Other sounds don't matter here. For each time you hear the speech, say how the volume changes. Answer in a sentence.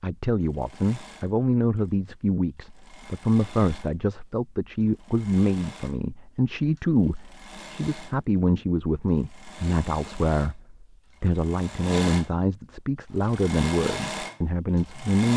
You can hear the speech from 0.0 to 15.3 s, at a steady volume.